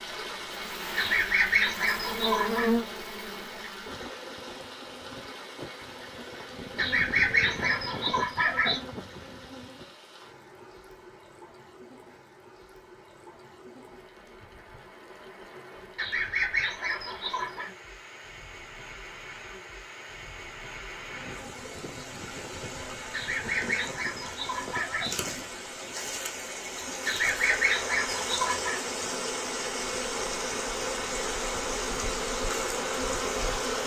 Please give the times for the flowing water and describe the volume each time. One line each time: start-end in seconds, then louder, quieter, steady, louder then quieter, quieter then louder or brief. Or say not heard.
0.0-33.8 quieter then louder.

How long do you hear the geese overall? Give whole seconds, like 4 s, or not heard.
9 s.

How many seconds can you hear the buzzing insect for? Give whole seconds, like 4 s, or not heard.
23 s.